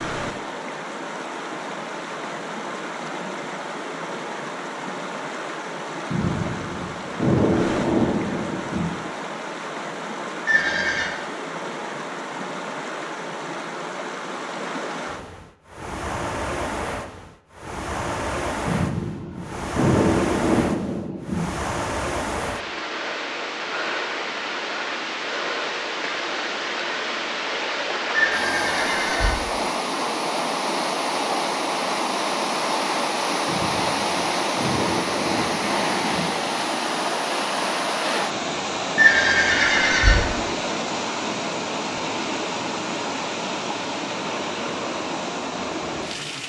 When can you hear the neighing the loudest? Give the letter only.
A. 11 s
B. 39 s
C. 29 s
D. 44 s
B.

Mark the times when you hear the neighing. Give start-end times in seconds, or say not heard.
10.4-11.1, 28.1-29.4, 39.0-40.2.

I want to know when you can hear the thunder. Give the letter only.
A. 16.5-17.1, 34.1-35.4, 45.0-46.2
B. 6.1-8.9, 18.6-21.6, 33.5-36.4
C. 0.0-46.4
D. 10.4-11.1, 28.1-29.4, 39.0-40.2
B.